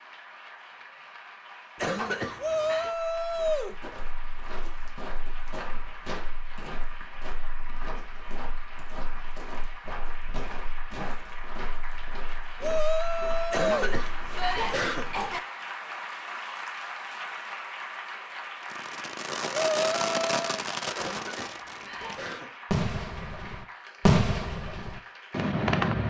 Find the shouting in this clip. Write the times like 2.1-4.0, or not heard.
2.4-3.8, 12.6-14.6, 19.8-20.6.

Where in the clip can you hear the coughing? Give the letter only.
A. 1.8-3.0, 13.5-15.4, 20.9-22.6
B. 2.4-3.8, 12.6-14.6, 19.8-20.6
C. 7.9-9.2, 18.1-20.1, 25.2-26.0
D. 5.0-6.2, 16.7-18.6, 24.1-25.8
A.